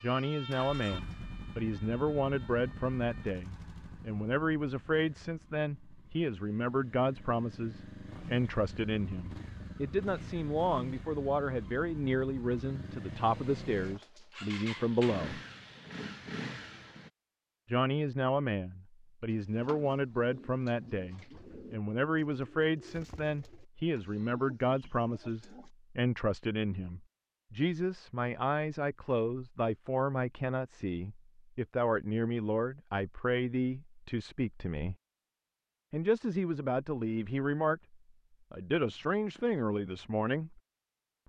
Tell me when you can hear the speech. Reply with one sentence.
You can hear the speech from 0.0 to 15.4 s, from 17.6 to 35.0 s and from 35.9 to 40.6 s.